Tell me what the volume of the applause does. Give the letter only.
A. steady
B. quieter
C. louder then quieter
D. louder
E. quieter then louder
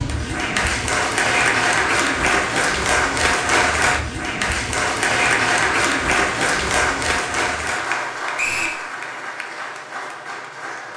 B.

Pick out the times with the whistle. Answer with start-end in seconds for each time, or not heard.
8.3-8.8.